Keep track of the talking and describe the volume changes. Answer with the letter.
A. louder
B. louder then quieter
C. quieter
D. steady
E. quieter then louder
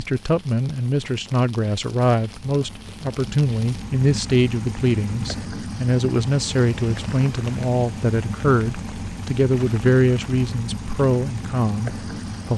D.